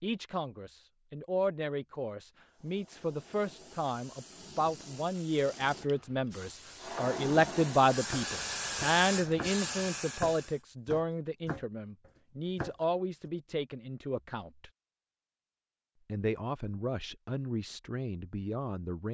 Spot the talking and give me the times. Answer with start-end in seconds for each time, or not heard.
0.0-14.7, 16.1-19.1.